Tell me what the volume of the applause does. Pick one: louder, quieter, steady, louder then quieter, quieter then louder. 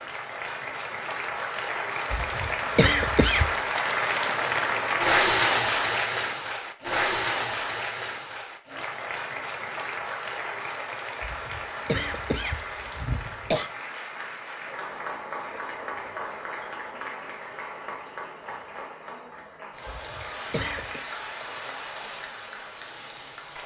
quieter.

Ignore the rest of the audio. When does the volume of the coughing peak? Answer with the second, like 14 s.
3 s.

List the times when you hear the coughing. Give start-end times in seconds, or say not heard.
2.1-3.5, 11.2-13.7, 19.9-21.0.